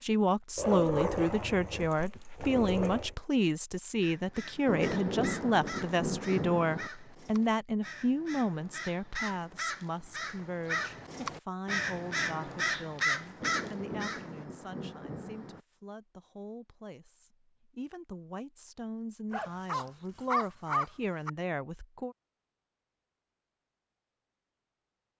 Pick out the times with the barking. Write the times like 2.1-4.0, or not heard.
0.6-3.1, 19.3-21.3.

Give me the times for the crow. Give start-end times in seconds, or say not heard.
4.0-14.4.